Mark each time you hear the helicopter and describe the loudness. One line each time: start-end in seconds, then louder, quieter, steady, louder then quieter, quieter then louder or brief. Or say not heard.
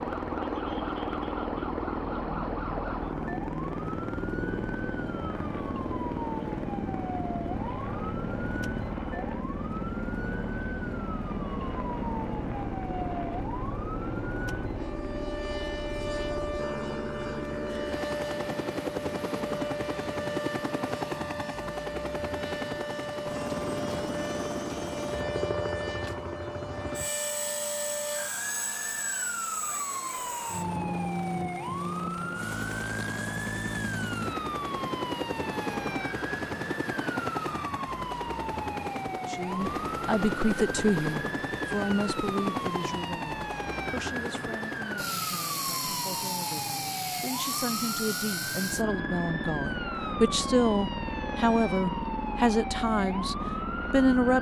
0.0-54.3 steady.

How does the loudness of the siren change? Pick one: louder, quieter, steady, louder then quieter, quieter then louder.
steady.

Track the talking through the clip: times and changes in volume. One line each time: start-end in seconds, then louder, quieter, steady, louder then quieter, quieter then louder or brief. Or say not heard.
39.2-54.3 quieter then louder.